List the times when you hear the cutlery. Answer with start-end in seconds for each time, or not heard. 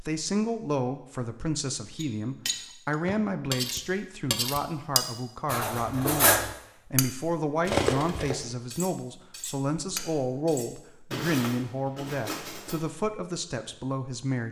1.9-12.8.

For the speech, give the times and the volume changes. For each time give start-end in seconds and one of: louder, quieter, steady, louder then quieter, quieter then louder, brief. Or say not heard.
0.0-14.4 steady.